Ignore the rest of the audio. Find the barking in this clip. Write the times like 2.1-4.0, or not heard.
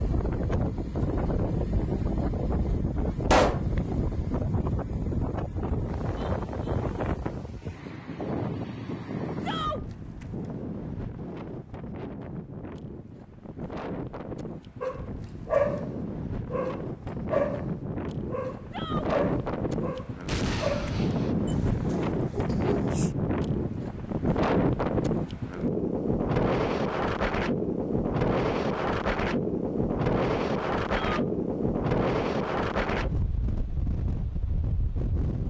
14.8-15.9, 16.5-23.1.